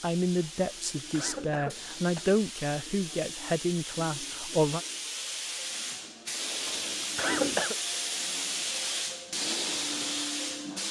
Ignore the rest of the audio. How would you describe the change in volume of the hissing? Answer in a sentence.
The loudness of the hissing goes up.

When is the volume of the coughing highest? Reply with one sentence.
The volume of the coughing peaks at 7 seconds.